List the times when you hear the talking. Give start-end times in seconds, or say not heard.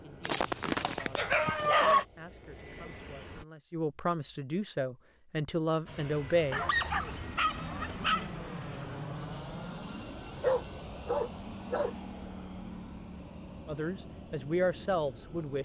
0.0-6.6, 13.7-15.6.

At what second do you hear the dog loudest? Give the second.
2 s.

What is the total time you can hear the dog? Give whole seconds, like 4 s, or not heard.
5 s.